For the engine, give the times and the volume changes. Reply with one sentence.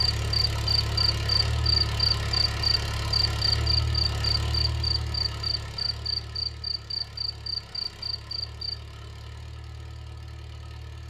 The engine can be heard from 0.0 to 11.0 s, getting quieter.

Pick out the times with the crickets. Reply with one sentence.
You can hear the crickets from 0.0 to 8.8 s.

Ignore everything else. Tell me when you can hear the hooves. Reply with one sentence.
The hooves can't be heard in this clip.